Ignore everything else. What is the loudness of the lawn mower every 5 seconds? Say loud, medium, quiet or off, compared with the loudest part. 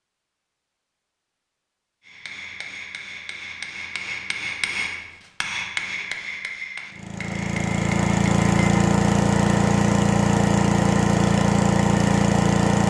off, loud, loud.